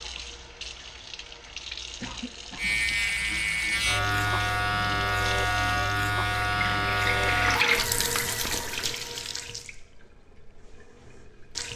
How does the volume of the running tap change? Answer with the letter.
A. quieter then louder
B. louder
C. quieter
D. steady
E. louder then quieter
E.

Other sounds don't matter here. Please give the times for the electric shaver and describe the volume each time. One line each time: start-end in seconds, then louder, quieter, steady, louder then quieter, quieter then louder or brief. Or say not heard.
2.5-7.7 steady.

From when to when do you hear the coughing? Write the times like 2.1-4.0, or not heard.
2.0-2.8.